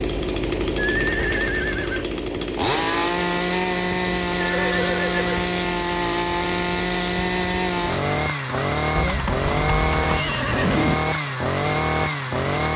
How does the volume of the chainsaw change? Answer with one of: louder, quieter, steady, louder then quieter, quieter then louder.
steady.